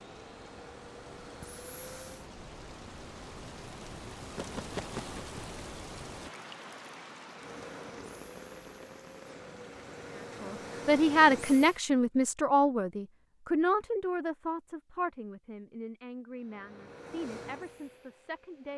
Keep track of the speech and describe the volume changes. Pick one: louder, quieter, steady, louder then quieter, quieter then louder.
quieter.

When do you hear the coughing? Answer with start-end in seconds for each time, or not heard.
not heard.